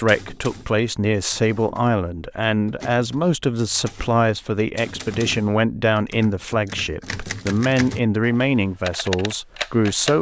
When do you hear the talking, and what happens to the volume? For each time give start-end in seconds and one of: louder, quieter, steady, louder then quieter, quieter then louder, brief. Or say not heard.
0.0-10.1 steady.